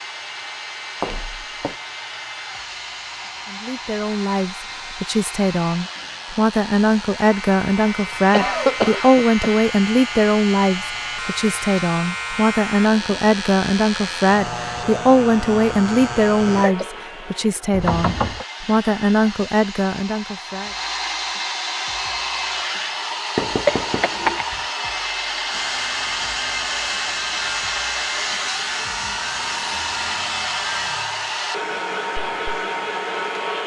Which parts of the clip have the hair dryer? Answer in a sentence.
You can hear the hair dryer from 0.0 to 33.6 s.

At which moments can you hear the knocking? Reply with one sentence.
You can hear the knocking from 1.0 to 1.8 s, from 17.7 to 18.4 s and from 23.4 to 24.4 s.